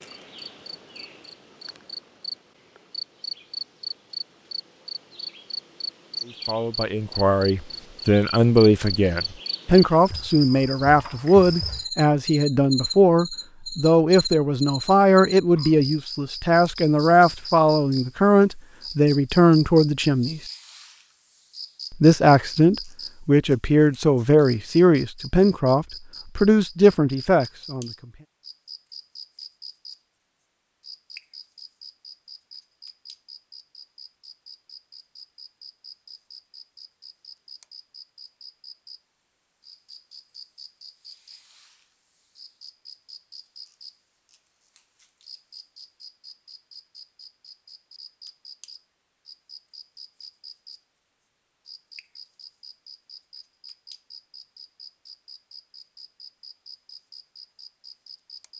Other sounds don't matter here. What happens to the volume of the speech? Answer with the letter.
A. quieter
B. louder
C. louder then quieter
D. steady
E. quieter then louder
D.